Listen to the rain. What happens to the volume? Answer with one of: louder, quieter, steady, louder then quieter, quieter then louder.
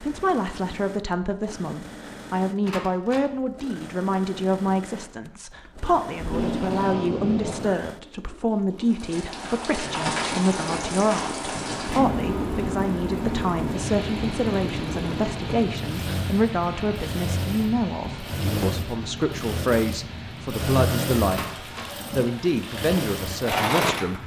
quieter.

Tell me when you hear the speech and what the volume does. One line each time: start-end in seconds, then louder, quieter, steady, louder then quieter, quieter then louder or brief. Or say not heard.
0.0-24.2 steady.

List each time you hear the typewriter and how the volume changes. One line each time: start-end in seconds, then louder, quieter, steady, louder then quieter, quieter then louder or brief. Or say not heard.
not heard.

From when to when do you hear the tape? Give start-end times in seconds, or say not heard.
6.2-7.8.